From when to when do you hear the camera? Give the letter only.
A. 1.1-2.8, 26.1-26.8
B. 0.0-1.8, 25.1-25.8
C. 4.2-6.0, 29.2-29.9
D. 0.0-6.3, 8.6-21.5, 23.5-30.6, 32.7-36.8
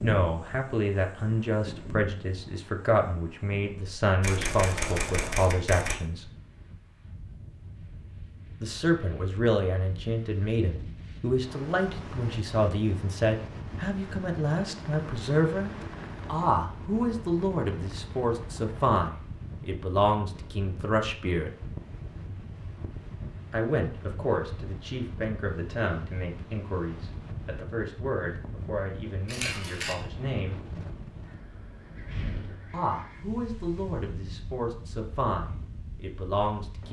C.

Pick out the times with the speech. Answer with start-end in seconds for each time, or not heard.
0.0-6.3, 8.6-21.5, 23.5-30.6, 32.7-36.8.